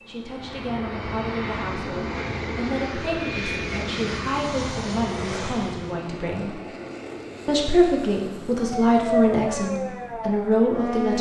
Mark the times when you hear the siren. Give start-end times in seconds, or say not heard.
8.6-11.1.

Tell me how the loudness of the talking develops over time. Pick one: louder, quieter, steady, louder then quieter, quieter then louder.
louder.